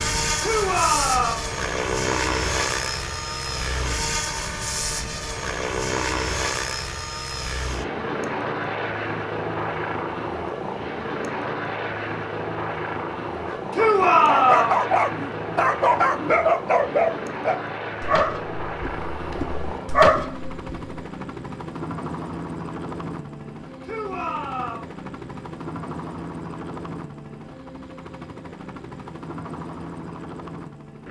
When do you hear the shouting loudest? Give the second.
14 s.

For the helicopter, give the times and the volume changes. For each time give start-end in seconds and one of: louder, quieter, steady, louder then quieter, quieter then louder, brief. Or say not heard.
0.0-31.0 quieter.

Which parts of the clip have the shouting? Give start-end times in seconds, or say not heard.
0.4-1.5, 13.7-14.8, 23.8-24.9.